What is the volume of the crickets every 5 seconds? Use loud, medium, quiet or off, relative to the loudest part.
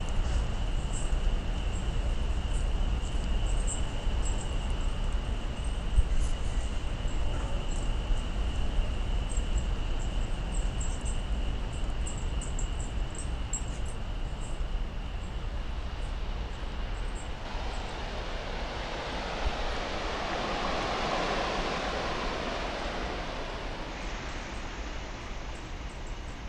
loud, loud, loud, medium, medium, medium.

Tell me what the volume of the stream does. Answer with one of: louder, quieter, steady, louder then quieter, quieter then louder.
louder.